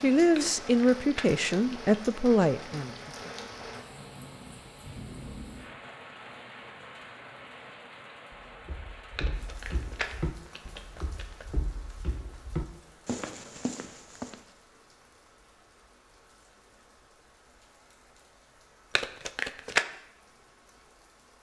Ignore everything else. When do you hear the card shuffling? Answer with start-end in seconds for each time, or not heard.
0.3-1.9, 9.2-11.4, 18.9-19.9.